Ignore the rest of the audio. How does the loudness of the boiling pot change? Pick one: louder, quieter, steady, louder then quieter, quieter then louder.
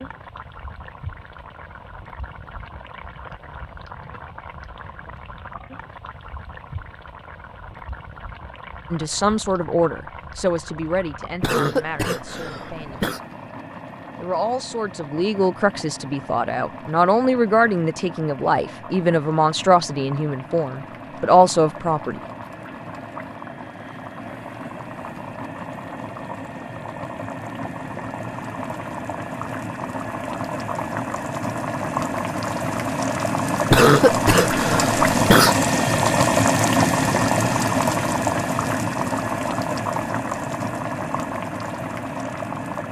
louder.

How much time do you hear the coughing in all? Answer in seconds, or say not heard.
4 s.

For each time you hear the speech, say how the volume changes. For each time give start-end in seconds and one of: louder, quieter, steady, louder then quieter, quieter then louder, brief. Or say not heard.
8.9-13.2 quieter
14.2-22.2 louder.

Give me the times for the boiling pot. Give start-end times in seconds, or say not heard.
0.0-42.8.